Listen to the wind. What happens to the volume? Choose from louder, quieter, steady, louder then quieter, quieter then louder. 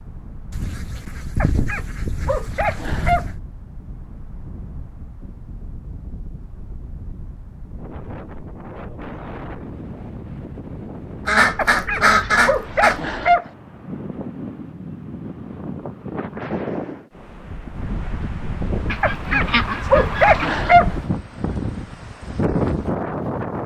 louder.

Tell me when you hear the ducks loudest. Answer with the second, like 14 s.
12 s.